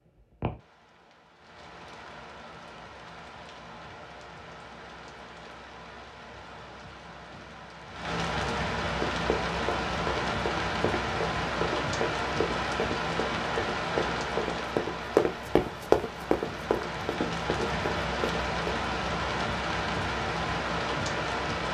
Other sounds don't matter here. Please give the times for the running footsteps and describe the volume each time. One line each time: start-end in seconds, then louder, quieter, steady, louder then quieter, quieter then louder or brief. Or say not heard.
8.9-18.7 louder then quieter.